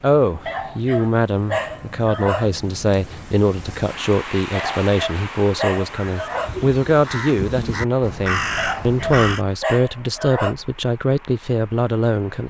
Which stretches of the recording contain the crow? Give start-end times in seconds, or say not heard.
5.7-9.4.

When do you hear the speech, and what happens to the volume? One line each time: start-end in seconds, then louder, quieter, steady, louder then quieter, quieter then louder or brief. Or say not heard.
0.0-12.4 steady.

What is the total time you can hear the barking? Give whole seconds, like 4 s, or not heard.
6 s.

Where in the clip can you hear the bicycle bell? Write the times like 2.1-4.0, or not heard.
not heard.